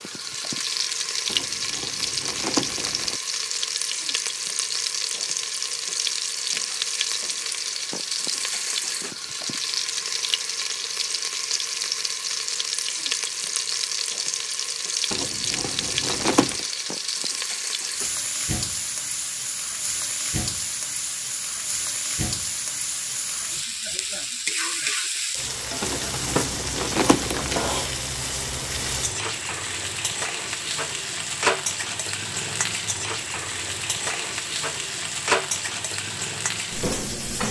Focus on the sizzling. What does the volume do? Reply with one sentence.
The volume of the sizzling stays about the same.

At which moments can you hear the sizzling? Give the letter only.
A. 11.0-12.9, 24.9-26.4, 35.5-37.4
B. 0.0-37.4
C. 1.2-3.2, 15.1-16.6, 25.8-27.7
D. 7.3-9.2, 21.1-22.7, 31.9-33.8
B.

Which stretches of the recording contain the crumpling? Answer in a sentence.
The crumpling can be heard from 1.2 to 3.2 s, from 15.1 to 16.6 s and from 25.8 to 27.7 s.